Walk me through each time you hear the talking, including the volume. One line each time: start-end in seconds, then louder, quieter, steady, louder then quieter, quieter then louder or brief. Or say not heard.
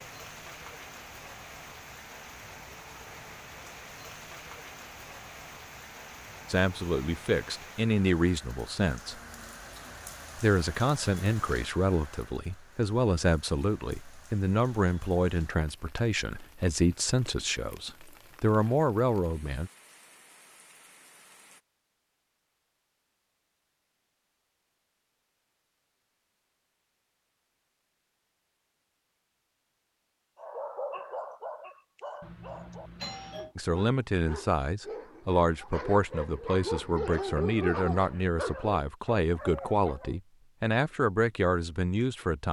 6.5-9.2 brief
10.3-19.7 steady
33.5-42.4 steady.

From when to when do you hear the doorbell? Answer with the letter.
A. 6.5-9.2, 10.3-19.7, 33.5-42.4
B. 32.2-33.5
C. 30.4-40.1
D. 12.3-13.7
B.